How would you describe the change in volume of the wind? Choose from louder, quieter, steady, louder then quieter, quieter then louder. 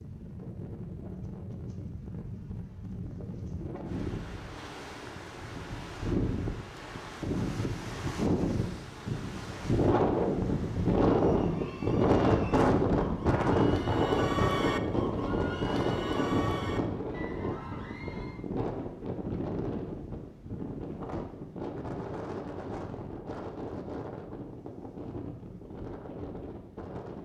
louder then quieter.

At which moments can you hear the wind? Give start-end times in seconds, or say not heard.
0.0-27.2.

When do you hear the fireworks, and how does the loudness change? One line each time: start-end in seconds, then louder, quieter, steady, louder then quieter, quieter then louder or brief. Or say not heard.
not heard.